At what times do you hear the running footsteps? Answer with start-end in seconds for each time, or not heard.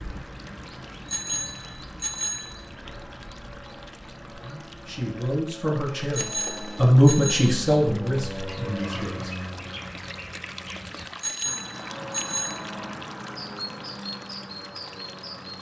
not heard.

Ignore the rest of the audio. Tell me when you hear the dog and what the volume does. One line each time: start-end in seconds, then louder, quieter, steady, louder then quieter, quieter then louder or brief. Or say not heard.
not heard.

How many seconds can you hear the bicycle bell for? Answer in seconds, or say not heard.
4 s.